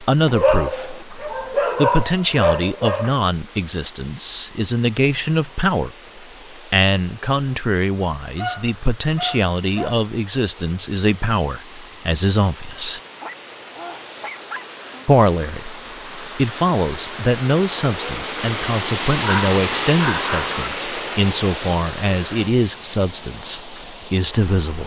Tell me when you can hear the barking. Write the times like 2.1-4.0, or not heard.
0.2-3.1, 8.3-10.0, 13.2-14.7, 19.2-20.6.